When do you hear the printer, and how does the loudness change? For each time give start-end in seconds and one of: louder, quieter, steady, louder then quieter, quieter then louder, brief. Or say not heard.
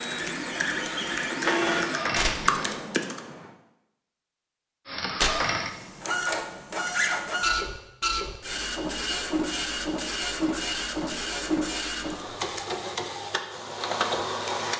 0.0-2.8 brief
4.8-14.7 steady.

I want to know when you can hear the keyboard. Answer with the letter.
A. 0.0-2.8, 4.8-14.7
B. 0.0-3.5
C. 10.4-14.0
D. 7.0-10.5
B.